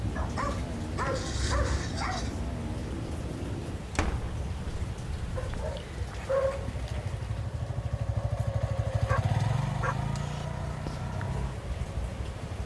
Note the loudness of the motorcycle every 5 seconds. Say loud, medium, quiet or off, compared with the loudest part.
medium, loud, loud.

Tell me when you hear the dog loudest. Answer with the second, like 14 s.
6 s.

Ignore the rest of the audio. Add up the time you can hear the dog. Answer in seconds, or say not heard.
5 s.